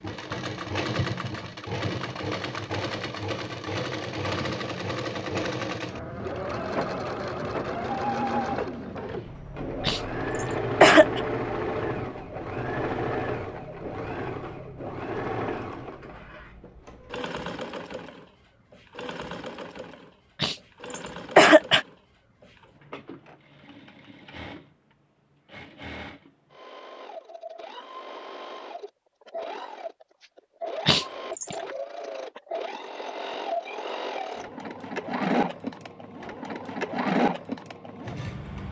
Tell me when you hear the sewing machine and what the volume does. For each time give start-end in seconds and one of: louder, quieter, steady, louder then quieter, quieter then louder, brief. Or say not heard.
0.0-38.6 quieter then louder.